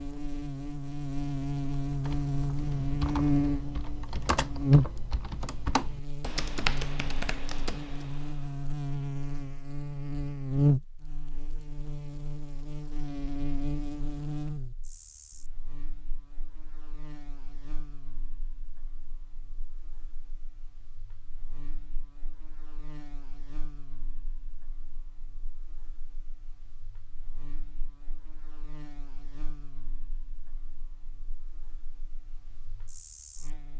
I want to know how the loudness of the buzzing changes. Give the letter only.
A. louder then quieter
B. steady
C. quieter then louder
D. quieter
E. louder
D.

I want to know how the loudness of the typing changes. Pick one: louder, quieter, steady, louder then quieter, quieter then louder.
louder then quieter.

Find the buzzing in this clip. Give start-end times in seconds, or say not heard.
0.0-33.7.